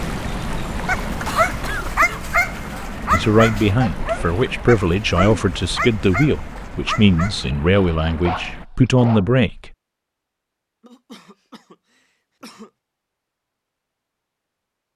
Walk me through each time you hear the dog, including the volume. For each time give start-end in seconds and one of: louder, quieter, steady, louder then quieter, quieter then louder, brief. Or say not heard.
0.8-9.3 quieter.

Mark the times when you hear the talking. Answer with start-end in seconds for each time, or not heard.
3.1-9.7.